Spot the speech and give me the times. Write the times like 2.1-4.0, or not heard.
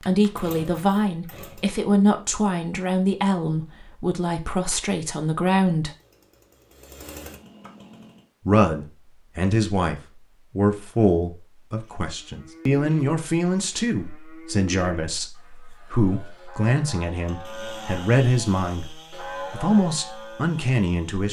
0.0-5.9, 8.4-21.2.